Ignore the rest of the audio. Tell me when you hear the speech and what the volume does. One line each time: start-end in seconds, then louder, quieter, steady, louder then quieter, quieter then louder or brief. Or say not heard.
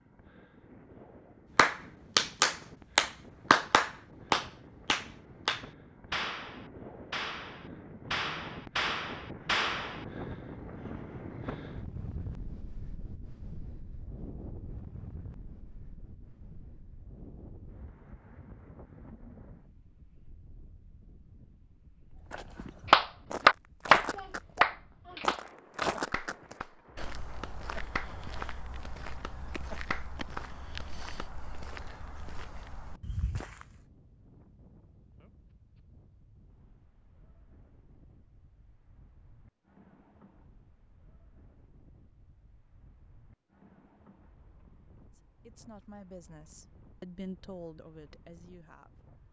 45.1-49.1 louder then quieter.